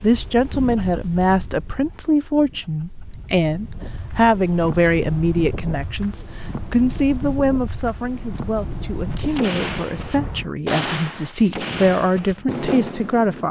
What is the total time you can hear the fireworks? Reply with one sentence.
You can hear the fireworks for 4 seconds altogether.